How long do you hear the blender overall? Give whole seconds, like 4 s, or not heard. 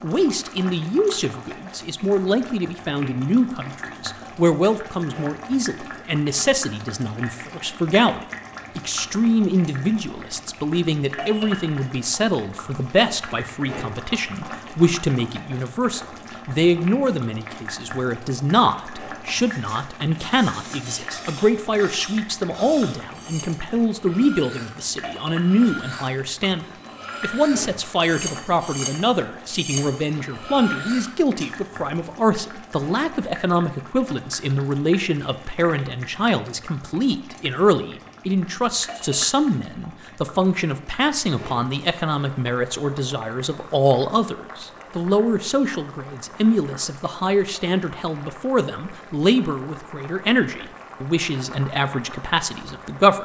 not heard.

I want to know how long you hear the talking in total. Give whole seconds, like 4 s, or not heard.
53 s.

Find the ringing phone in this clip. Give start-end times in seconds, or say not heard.
not heard.